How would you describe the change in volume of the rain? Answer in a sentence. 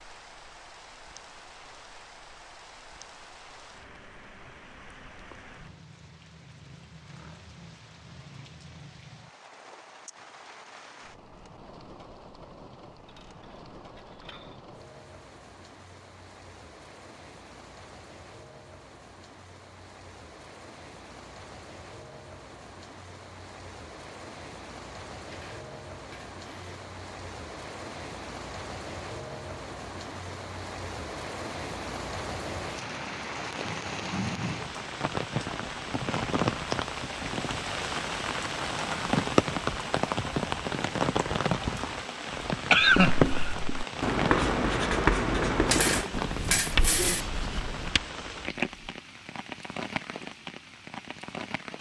The volume of the rain goes up.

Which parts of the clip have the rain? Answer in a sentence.
You can hear the rain from 0.0 to 51.7 s.